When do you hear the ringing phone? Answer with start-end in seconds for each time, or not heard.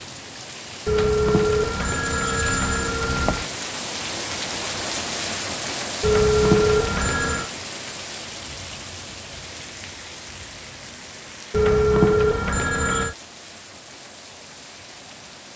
0.8-3.5, 6.0-7.5, 11.5-13.2.